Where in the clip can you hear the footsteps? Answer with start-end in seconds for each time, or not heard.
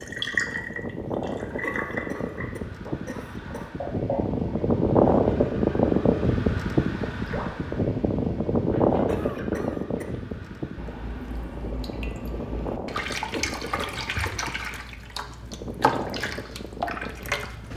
not heard.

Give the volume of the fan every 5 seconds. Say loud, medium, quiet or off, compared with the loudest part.
medium, loud, quiet, quiet.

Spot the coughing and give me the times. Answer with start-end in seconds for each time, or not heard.
1.6-3.7, 9.1-10.1, 13.3-14.4.